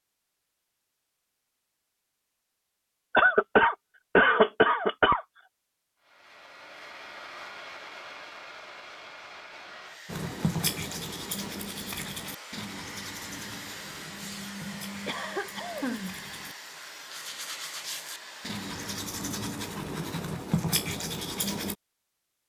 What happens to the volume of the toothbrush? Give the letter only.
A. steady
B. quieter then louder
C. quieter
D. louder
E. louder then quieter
B.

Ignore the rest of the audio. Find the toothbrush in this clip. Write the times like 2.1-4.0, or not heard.
10.1-21.8.